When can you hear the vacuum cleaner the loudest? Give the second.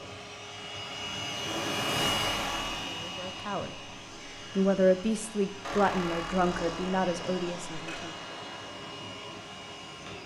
2 s.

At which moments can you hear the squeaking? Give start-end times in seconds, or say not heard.
1.9-2.9, 5.6-8.1.